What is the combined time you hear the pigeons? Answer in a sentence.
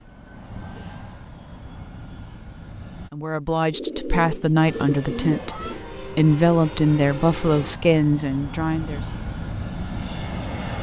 The pigeons can be heard for 2 seconds in total.